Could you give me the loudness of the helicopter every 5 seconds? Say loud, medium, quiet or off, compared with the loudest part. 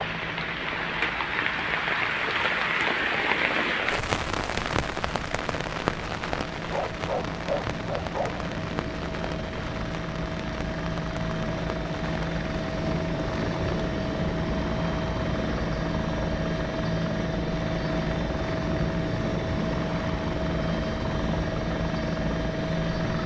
quiet, medium, loud, loud, loud.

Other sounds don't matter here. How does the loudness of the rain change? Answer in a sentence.
The volume of the rain goes down.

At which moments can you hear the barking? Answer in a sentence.
The barking can be heard from 6.7 to 8.4 s.